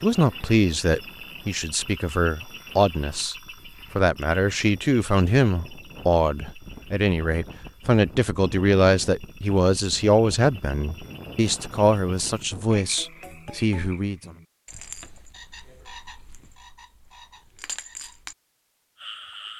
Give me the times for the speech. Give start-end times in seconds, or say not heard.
0.0-3.4, 4.0-14.3.